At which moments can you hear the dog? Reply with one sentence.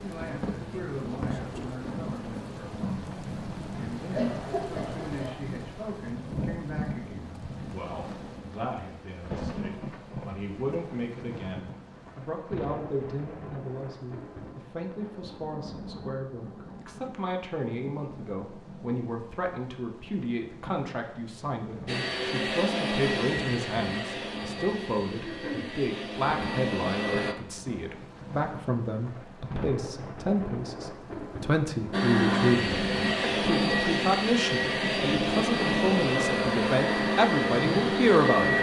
You can't hear the dog here.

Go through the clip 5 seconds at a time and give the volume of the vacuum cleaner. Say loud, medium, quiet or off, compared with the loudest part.
off, off, off, off, medium, medium, loud, loud.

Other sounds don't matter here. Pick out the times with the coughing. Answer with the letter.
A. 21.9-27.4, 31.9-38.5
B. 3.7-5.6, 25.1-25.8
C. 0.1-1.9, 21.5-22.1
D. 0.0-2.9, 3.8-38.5
B.